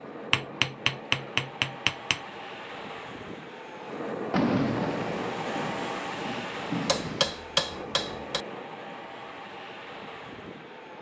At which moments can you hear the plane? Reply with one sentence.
The plane can be heard from 0.0 to 10.9 s.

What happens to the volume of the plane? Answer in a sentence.
The volume of the plane goes up, then down.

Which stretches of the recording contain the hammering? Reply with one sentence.
You can hear the hammering from 0.3 to 2.2 s and from 6.8 to 8.4 s.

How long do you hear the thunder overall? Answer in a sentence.
The thunder can be heard for 3 seconds in total.